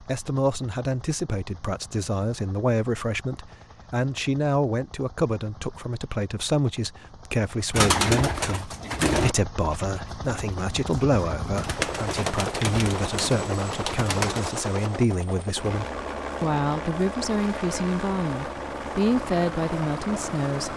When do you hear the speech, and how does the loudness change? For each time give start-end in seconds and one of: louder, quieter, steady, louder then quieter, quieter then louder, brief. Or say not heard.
0.1-20.7 steady.